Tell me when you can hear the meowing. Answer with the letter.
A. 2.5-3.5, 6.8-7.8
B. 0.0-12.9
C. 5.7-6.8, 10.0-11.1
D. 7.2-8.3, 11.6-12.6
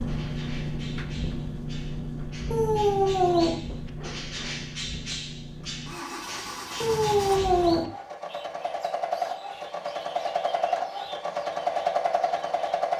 A.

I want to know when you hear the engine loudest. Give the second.
12 s.